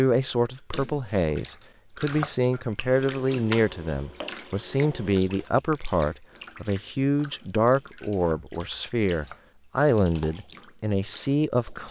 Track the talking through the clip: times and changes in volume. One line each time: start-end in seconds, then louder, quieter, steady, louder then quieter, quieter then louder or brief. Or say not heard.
0.0-11.8 steady.